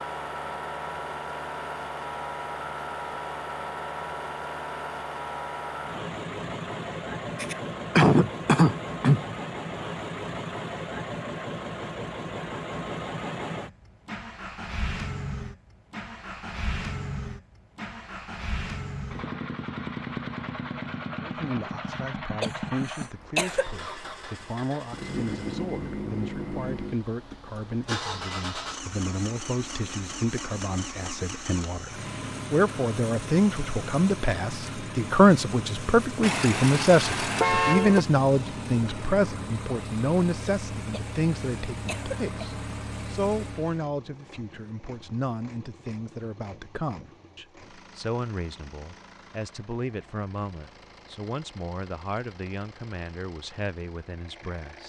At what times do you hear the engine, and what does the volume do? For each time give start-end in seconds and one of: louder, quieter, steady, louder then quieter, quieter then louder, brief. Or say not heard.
0.0-54.8 quieter.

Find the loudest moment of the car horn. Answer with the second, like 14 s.
38 s.